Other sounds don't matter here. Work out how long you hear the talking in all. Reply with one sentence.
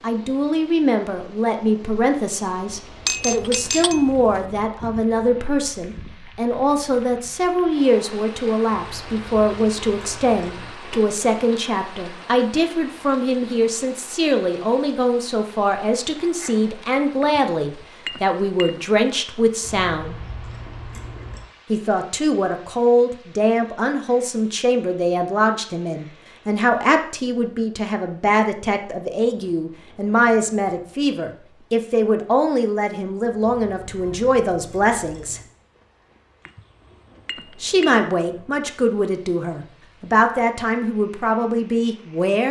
The talking can be heard for 39 seconds in total.